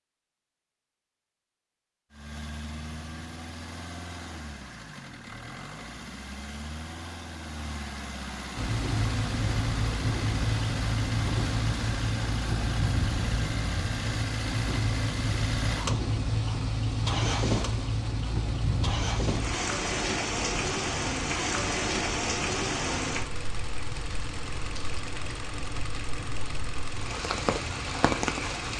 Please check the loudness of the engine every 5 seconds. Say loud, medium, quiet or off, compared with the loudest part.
medium, medium, loud, loud, medium, medium.